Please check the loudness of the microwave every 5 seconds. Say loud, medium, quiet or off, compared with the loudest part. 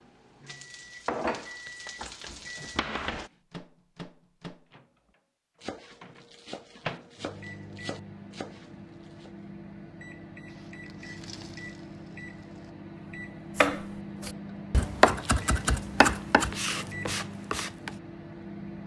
medium, loud, loud, loud.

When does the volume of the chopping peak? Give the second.
15 s.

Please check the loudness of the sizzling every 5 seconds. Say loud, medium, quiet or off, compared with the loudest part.
loud, off, quiet, off.